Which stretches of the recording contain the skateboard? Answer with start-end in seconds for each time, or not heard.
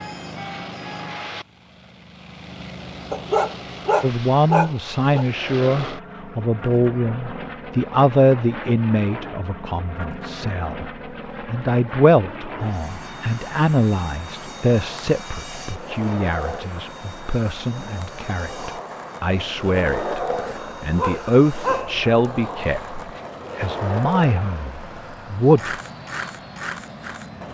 14.2-27.4.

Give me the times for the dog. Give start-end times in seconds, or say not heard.
3.1-5.2, 20.4-22.1.